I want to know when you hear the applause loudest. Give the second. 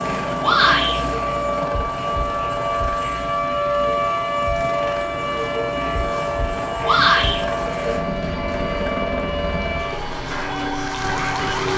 11 s.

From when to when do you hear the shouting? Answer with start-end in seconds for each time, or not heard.
0.4-1.0, 6.8-7.4.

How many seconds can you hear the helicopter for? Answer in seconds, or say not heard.
12 s.